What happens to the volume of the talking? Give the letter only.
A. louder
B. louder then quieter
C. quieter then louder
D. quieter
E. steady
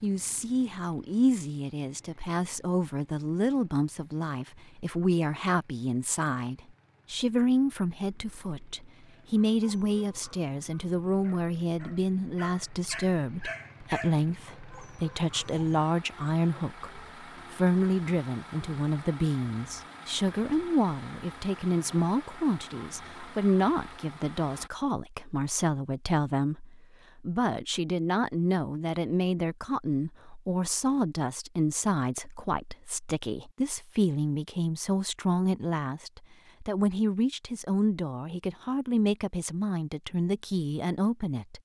E.